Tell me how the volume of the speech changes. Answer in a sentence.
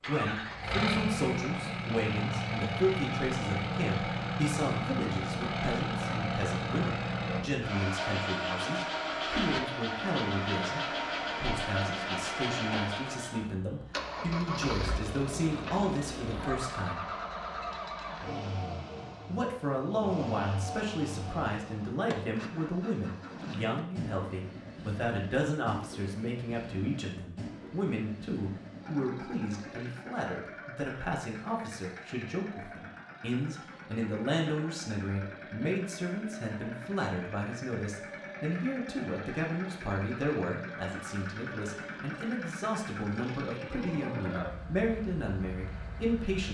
The loudness of the speech stays about the same.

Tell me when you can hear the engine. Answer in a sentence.
The engine can be heard from 0.0 to 46.4 s.